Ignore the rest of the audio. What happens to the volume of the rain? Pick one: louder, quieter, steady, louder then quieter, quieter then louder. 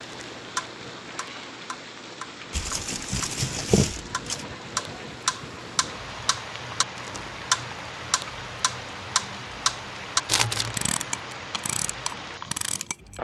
steady.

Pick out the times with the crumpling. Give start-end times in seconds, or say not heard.
2.5-4.5, 10.2-10.8.